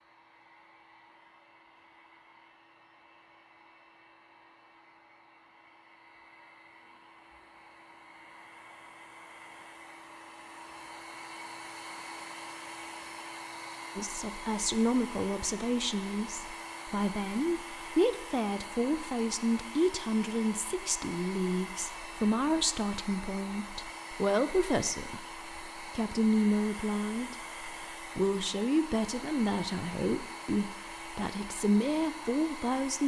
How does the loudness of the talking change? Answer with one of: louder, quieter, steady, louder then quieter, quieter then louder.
steady.